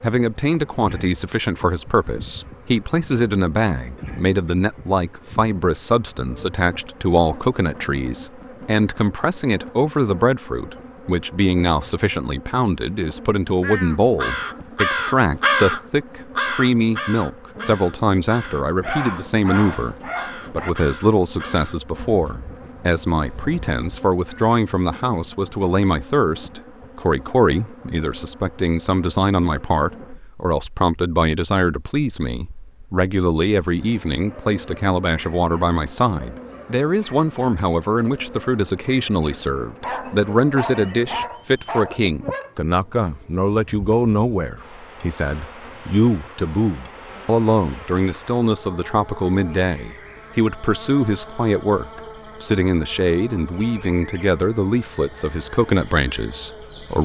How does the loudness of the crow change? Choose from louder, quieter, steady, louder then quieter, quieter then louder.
quieter.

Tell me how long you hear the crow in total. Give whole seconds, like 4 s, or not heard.
11 s.